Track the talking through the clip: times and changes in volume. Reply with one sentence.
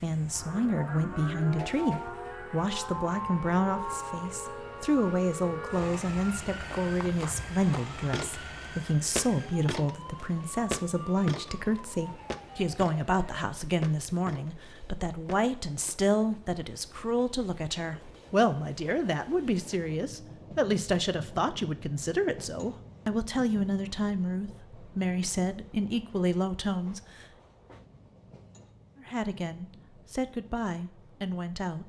You can hear the talking from 0.0 to 27.2 s, at a steady volume; and briefly from 28.9 to 31.8 s.